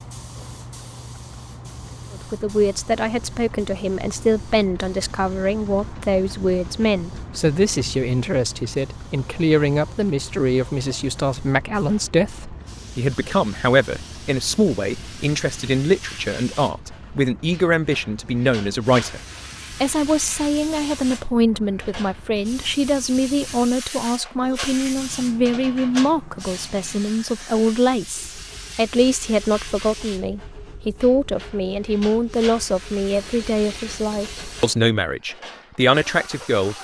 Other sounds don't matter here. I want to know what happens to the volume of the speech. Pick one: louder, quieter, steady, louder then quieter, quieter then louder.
steady.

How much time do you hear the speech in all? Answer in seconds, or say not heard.
34 s.